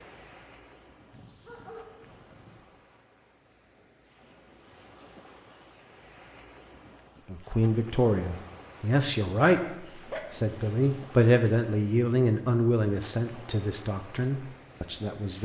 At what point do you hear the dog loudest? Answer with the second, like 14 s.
10 s.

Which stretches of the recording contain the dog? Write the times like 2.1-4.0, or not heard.
1.1-2.6, 9.6-10.2.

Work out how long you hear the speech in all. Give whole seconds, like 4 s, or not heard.
8 s.